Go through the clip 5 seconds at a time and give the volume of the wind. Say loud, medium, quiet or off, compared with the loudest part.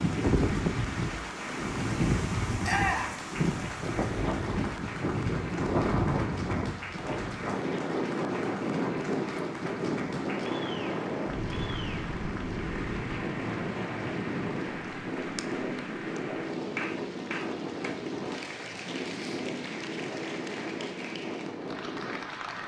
loud, loud, loud, medium, medium.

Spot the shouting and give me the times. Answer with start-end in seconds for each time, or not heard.
2.6-3.1.